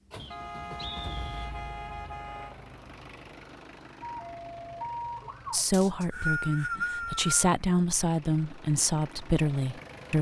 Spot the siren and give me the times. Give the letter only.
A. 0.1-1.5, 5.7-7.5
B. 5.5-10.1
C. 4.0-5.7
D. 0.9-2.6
C.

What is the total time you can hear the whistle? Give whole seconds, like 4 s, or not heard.
3 s.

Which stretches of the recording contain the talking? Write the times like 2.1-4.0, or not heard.
5.5-10.1.